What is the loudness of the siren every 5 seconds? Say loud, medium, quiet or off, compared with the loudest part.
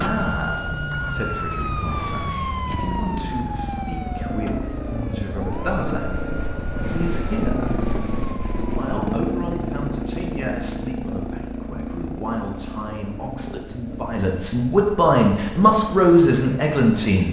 loud, medium, off, off.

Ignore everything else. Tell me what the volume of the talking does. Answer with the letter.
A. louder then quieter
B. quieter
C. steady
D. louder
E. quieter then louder
D.